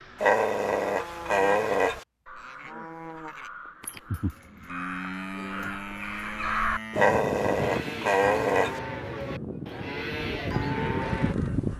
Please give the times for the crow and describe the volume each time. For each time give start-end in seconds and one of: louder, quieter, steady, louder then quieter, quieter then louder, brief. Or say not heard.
0.0-8.0 louder
9.2-11.7 brief.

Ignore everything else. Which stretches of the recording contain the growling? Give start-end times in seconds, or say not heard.
0.2-2.0, 7.0-8.8.